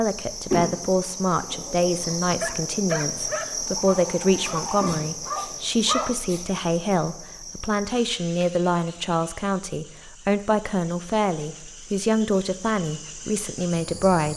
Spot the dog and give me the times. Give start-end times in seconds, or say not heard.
2.4-6.2.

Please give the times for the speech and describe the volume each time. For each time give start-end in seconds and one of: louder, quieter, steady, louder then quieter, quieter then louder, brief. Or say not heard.
0.0-14.3 steady.